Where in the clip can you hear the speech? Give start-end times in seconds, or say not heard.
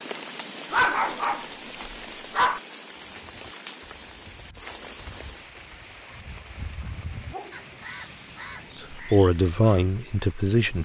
8.8-10.7.